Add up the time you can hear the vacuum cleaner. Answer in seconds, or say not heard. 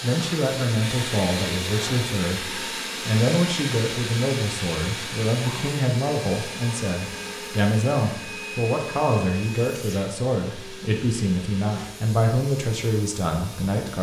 14 s.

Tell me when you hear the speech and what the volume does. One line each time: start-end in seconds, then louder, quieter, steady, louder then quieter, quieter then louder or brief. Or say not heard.
0.0-13.9 steady.